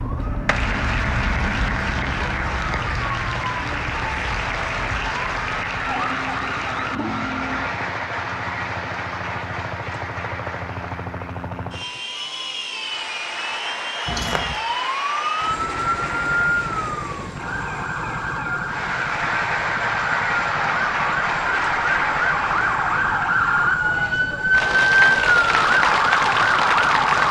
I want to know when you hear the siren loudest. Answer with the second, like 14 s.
25 s.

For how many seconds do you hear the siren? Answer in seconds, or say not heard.
21 s.